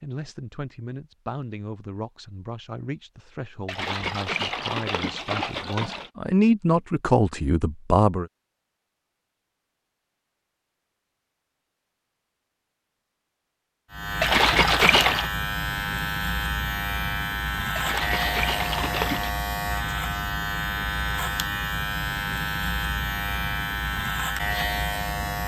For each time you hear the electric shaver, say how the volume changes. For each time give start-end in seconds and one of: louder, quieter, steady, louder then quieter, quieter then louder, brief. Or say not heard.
13.9-25.4 steady.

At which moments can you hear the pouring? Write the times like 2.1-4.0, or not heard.
3.6-6.1, 14.2-15.3, 17.8-19.4.